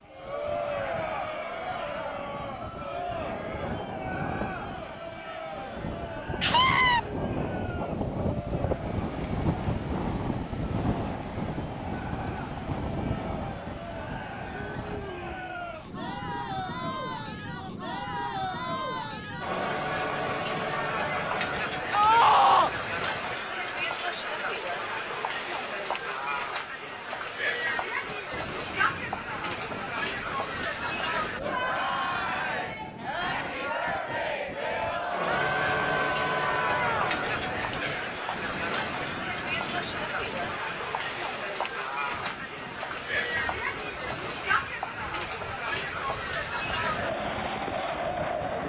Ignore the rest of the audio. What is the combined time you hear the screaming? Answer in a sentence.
The screaming can be heard for 3 seconds in total.